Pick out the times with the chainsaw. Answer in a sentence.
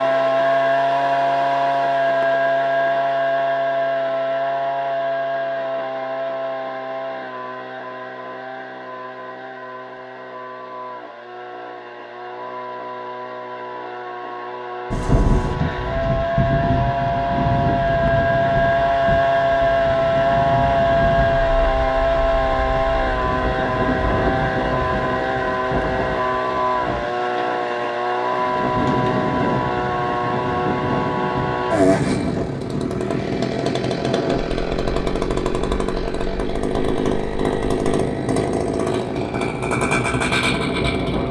You can hear the chainsaw from 0.0 to 41.2 s.